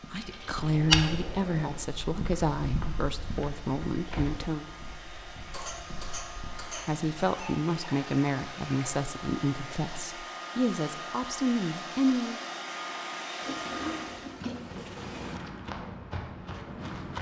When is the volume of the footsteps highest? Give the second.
1 s.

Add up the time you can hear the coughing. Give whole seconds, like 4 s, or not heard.
2 s.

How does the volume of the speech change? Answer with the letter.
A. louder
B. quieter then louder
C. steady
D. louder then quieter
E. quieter
C.